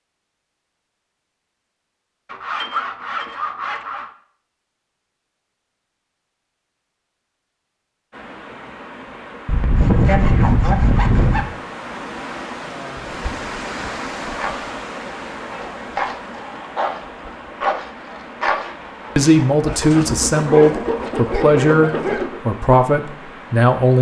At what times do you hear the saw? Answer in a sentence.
The saw can be heard from 2.3 to 4.0 s, from 9.4 to 11.4 s and from 19.8 to 22.4 s.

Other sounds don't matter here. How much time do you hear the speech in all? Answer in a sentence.
The speech can be heard for 5 seconds in total.